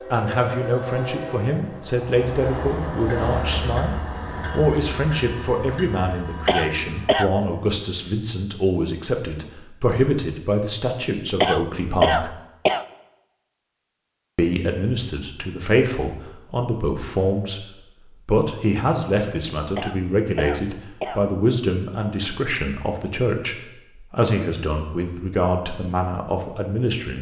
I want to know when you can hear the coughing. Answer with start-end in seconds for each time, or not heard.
6.5-7.3, 11.4-12.8, 19.8-21.2.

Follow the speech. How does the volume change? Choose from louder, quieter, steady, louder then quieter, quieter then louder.
steady.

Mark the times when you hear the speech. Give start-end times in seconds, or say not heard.
0.1-12.3, 14.3-17.6, 18.2-27.1.